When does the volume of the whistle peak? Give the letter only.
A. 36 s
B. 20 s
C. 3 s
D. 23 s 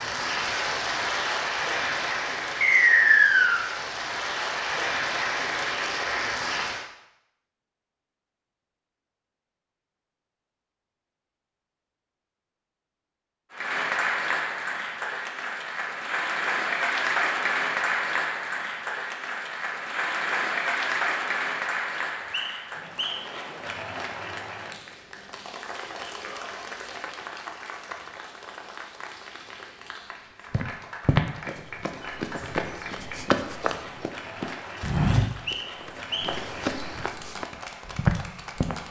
C.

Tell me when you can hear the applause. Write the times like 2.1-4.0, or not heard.
0.0-6.8, 13.5-38.8.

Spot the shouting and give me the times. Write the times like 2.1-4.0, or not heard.
26.1-26.8.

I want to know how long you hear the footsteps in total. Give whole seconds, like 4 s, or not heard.
8 s.